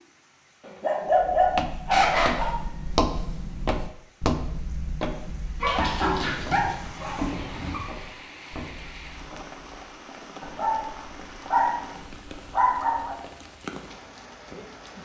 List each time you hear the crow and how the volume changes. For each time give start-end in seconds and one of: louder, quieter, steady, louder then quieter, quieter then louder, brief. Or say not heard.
not heard.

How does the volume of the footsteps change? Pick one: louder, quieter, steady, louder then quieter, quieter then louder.
quieter.